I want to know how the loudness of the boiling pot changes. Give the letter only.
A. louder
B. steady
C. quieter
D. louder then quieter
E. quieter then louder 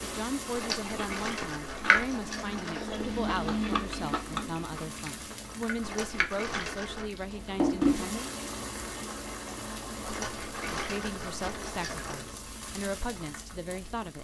D.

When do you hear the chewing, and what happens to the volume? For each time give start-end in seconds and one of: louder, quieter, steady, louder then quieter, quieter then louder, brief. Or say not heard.
0.6-8.4 quieter.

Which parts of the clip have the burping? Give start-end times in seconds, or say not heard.
not heard.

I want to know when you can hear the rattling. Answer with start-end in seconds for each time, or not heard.
0.5-3.0, 5.8-7.1, 10.1-12.2.